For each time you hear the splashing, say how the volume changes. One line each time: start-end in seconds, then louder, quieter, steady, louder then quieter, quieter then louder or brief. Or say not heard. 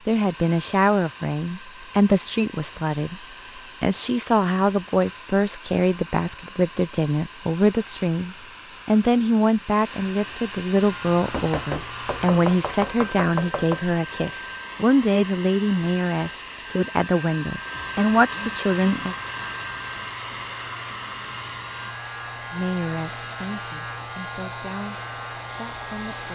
not heard.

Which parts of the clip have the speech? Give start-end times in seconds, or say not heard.
0.1-3.2, 3.8-19.1, 22.5-26.3.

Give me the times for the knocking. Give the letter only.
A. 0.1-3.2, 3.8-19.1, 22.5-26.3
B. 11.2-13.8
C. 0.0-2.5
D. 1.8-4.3
B.